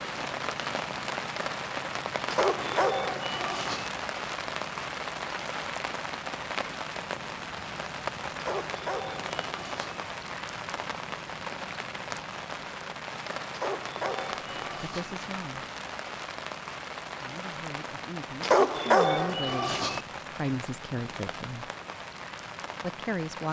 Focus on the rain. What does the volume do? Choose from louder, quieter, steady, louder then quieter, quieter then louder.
quieter.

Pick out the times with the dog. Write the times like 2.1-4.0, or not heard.
2.3-3.9, 8.3-10.0, 13.5-15.2, 18.4-20.1.